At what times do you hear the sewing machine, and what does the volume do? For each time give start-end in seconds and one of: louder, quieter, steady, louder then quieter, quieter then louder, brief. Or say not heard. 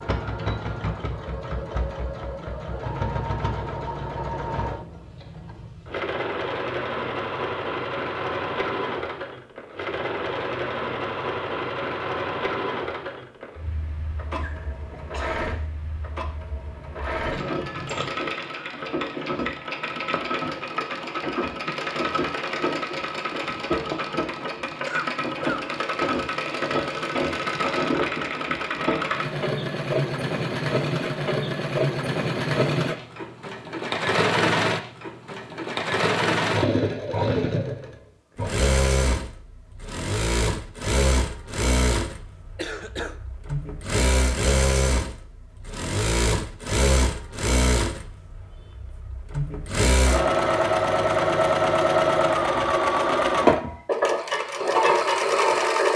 0.0-55.9 louder.